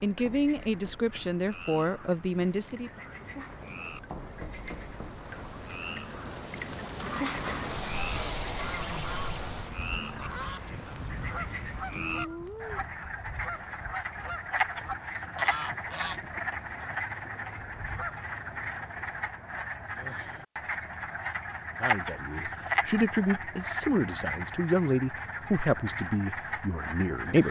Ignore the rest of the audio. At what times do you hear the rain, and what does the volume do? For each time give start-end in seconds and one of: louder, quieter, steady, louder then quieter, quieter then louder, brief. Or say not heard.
0.0-19.2 louder then quieter.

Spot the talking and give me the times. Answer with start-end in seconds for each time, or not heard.
0.0-2.9, 21.8-27.4.